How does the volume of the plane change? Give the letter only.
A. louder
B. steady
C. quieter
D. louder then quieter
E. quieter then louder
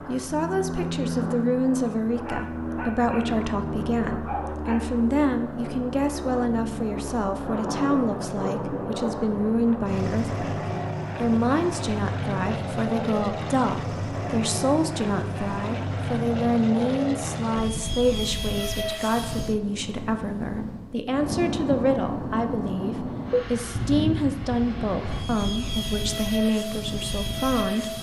B.